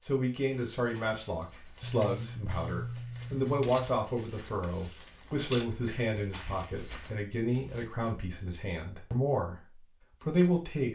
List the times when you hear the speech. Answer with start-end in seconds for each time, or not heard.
0.0-10.8.